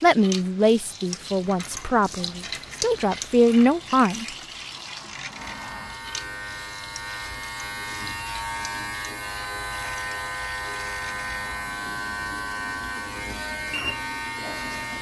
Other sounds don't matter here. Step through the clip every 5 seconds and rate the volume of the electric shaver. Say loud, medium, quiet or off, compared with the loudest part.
off, loud, loud.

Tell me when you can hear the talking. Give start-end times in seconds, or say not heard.
0.0-4.2.